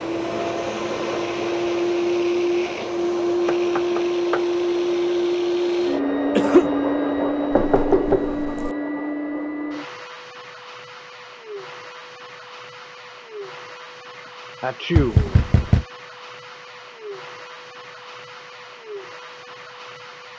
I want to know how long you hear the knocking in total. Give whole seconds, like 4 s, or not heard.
3 s.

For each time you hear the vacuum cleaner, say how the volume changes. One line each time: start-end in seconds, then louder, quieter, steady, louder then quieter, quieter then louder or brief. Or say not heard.
0.0-20.3 quieter.